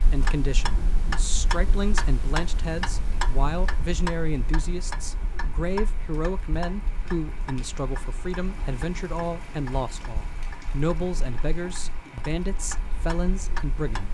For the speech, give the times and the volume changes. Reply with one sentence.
You can hear the speech from 0.0 to 14.0 s, at a steady volume.